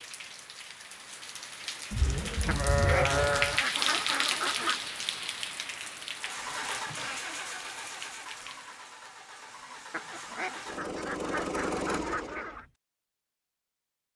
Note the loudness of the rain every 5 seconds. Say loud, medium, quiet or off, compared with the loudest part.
loud, medium, off.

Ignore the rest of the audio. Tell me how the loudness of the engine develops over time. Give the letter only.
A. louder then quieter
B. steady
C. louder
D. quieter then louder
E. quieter
D.